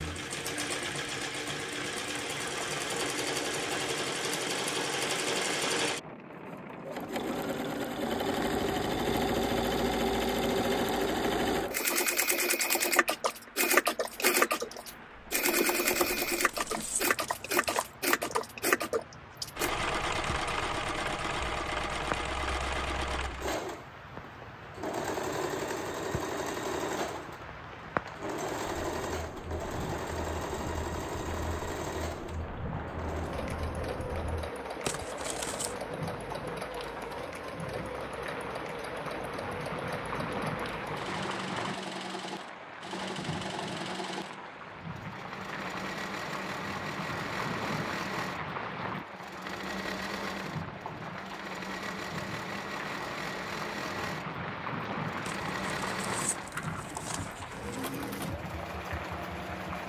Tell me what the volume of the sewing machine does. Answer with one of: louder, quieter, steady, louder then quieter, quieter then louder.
quieter.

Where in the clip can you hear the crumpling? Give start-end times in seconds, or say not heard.
15.9-17.9, 34.9-35.8, 55.2-57.9.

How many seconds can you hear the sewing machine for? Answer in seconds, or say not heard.
60 s.